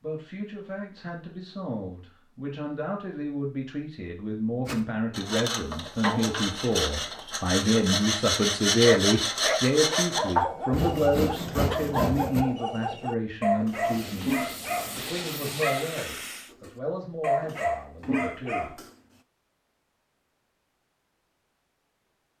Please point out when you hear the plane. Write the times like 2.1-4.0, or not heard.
13.7-16.6.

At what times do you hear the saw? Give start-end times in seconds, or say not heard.
4.7-12.4.